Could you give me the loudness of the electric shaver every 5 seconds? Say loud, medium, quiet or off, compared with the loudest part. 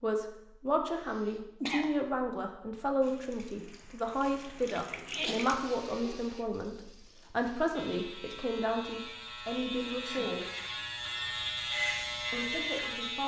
off, medium, loud.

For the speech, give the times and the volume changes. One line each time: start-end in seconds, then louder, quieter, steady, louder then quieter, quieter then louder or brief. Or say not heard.
0.0-10.4 steady
12.3-13.2 brief.